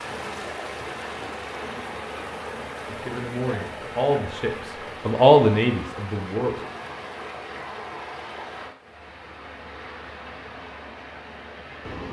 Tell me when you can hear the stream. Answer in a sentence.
The stream can be heard from 0.0 to 12.0 s.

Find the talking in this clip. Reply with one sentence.
You can hear the talking from 2.9 to 6.7 s.